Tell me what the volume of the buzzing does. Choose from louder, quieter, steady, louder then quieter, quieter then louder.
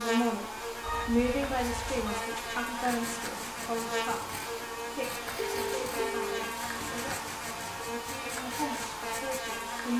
steady.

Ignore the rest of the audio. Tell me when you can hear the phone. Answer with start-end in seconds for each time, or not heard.
0.8-2.2, 5.3-7.2.